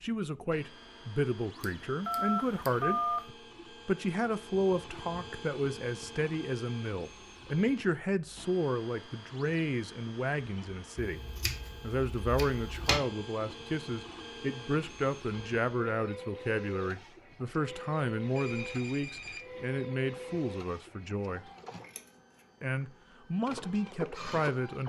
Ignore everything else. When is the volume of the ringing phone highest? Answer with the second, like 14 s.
3 s.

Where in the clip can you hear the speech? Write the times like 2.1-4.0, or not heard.
0.0-3.0, 3.9-11.2, 11.8-21.4, 22.6-24.8.